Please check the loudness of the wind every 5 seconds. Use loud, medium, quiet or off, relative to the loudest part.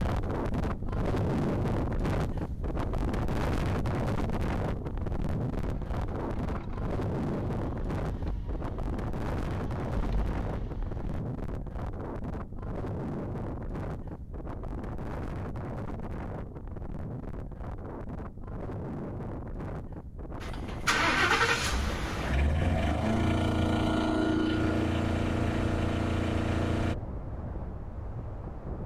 loud, loud, medium, medium, medium, medium.